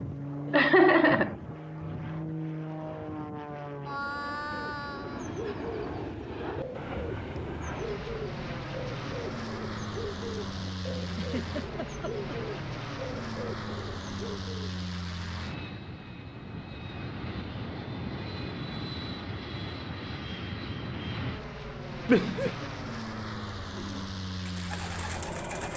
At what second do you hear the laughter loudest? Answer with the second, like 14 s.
1 s.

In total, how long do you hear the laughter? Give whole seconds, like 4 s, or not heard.
3 s.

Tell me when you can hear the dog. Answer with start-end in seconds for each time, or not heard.
not heard.